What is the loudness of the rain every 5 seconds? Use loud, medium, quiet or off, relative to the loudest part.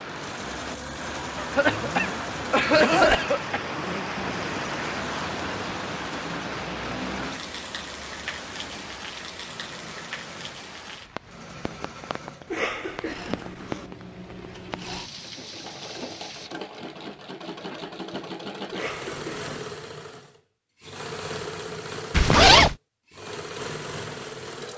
loud, loud, medium, medium, off.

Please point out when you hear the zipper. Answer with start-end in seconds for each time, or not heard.
1.7-4.1, 22.1-22.8.